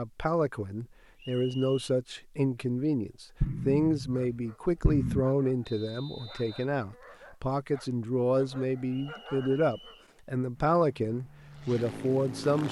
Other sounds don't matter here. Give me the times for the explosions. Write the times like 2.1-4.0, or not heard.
3.4-5.2.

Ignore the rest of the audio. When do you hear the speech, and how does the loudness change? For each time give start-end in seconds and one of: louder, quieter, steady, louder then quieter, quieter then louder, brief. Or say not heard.
0.0-12.6 steady.